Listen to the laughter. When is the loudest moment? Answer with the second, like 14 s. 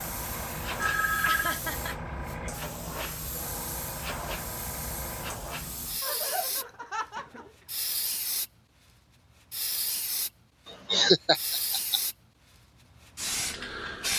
11 s.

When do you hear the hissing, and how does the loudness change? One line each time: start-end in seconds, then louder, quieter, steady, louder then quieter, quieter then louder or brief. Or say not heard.
0.0-6.7 steady
7.7-8.5 brief
9.5-10.3 brief
11.3-14.1 brief.